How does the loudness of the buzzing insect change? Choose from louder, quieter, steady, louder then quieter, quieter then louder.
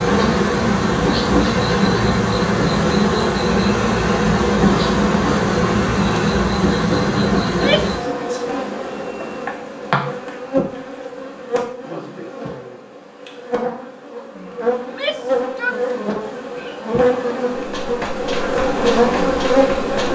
quieter then louder.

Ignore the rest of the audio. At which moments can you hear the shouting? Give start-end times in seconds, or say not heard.
7.5-8.0, 14.8-15.8.